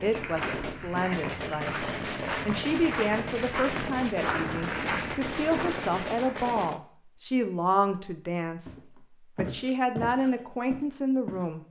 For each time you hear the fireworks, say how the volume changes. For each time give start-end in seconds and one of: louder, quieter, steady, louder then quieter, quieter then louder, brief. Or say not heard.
0.0-6.8 steady.